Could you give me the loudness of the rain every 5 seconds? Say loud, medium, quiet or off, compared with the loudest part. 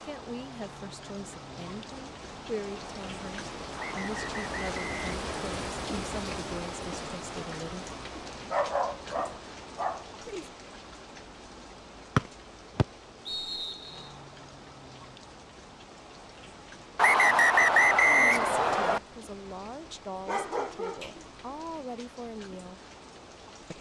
loud, loud, medium, medium, medium.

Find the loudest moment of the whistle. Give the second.
18 s.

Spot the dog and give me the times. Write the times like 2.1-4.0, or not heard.
8.5-10.1, 20.2-21.2.